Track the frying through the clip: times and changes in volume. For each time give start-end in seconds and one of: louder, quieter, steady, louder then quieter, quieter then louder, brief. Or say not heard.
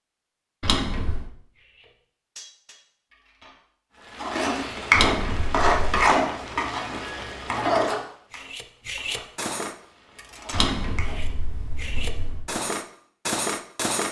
4.1-11.2 quieter.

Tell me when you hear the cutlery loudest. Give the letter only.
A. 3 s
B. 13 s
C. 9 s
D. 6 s
B.